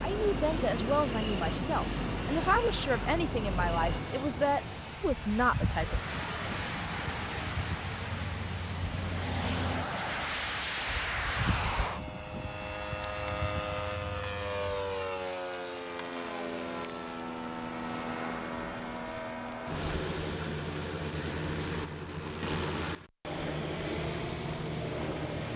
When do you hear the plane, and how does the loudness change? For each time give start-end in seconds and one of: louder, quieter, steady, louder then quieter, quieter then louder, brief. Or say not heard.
0.0-25.5 steady.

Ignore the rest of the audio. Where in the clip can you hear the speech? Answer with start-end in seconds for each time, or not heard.
0.0-6.0.